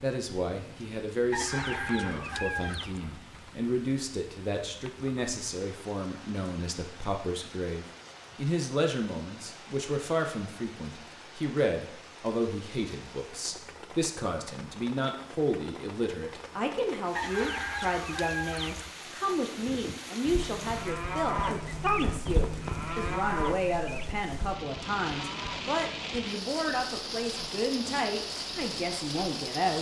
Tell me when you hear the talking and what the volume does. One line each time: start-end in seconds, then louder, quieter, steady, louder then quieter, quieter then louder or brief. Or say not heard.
0.0-29.7 steady.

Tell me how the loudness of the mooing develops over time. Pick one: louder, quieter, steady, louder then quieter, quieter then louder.
louder then quieter.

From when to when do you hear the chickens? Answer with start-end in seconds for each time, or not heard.
1.3-3.0, 17.1-18.9.